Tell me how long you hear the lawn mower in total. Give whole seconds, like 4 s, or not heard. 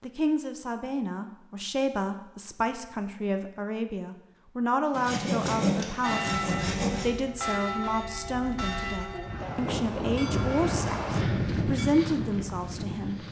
not heard.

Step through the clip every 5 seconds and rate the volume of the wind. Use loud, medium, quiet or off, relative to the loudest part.
off, medium, loud.